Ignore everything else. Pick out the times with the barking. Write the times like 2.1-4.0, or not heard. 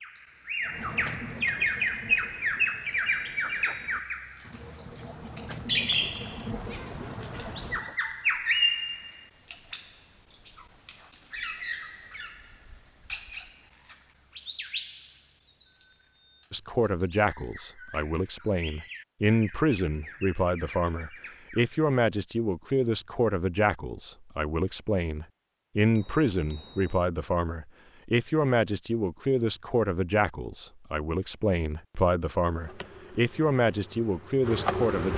0.6-8.0.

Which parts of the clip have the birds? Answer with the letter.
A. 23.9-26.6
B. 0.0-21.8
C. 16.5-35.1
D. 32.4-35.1
B.